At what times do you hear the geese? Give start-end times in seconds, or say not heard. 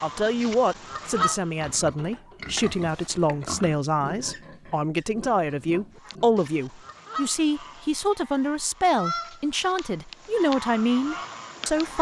0.0-1.8, 6.0-11.9.